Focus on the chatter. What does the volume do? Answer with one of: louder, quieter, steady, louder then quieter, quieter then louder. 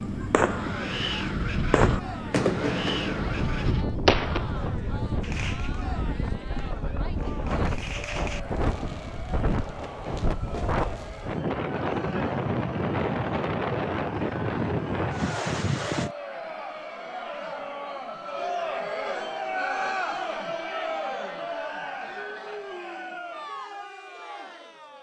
louder.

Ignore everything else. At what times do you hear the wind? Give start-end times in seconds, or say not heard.
0.0-16.1.